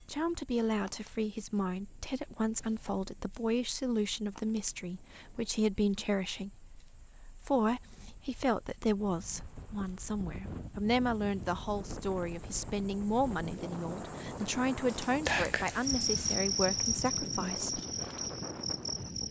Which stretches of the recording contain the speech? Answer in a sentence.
The speech can be heard from 0.0 to 17.8 s.